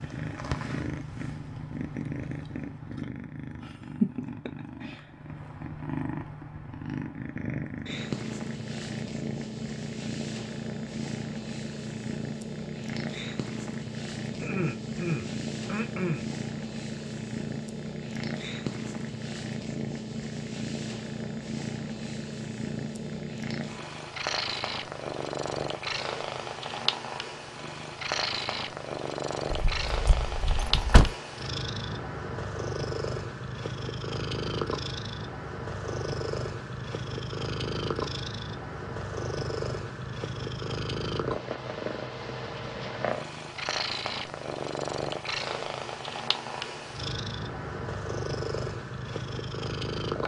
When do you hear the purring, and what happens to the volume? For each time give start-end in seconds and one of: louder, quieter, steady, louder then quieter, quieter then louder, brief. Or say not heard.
0.0-50.2 steady.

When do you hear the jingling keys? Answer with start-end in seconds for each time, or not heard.
29.5-31.1.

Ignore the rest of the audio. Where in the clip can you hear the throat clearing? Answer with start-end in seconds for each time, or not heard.
14.3-16.2.